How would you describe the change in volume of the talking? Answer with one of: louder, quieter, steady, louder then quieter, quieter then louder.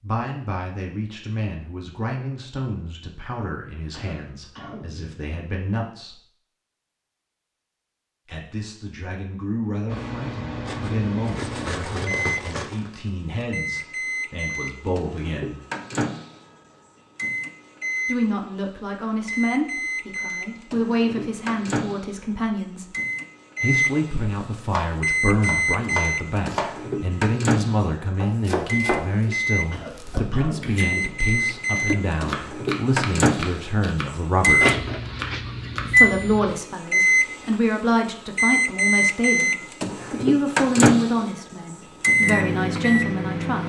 louder.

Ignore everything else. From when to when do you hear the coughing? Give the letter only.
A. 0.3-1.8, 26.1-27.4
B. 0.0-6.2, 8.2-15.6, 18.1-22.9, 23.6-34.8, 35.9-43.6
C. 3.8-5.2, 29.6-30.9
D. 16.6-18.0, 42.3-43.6
C.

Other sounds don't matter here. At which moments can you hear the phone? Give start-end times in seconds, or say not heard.
not heard.